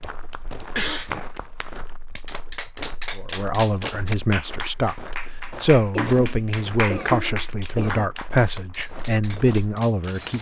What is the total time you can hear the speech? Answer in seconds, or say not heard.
7 s.